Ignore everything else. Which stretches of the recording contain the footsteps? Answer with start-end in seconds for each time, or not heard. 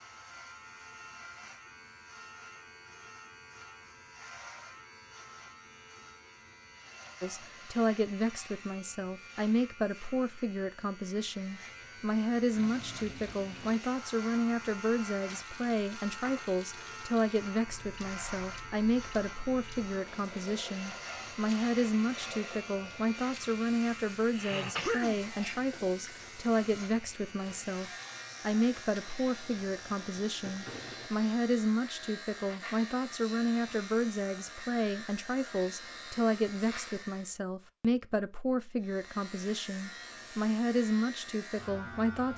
not heard.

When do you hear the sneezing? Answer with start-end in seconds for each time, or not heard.
24.3-25.9.